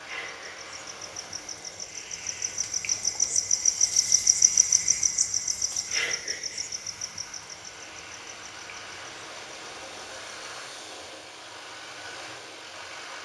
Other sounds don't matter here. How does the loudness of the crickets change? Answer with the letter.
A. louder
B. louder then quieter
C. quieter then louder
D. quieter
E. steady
B.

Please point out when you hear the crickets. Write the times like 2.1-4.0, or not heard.
0.0-10.6.